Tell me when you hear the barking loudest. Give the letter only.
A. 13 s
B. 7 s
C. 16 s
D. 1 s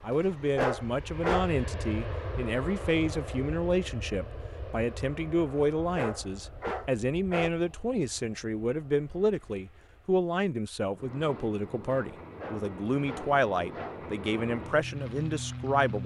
D.